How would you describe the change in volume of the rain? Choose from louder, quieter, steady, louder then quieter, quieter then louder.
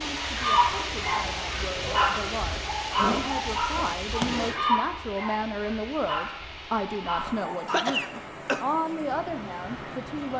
quieter.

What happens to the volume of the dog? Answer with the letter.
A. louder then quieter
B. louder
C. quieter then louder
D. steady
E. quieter
E.